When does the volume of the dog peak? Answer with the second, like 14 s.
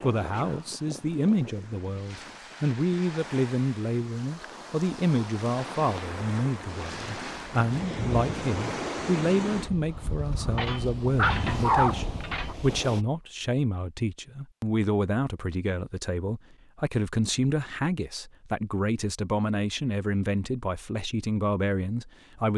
12 s.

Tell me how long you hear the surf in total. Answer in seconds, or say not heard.
13 s.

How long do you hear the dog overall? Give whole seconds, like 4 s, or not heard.
2 s.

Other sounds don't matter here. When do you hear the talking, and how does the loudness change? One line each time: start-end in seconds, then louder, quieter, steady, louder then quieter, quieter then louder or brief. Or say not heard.
0.0-22.5 steady.